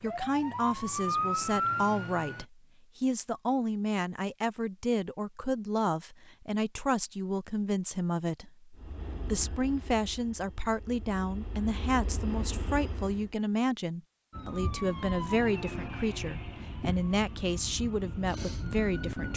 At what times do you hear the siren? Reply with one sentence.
The siren can be heard from 0.0 to 2.5 s and from 14.3 to 19.3 s.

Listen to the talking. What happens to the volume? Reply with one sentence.
The volume of the talking stays about the same.